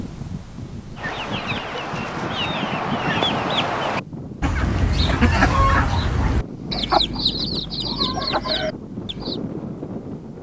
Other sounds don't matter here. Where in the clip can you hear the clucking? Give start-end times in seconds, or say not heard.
0.9-9.4.